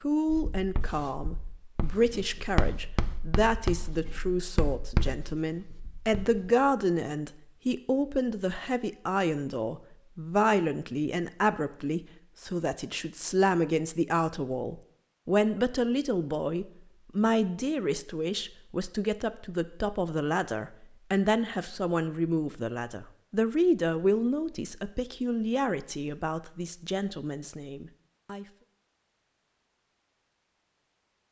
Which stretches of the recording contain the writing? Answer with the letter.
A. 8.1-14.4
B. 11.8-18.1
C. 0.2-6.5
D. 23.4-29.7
C.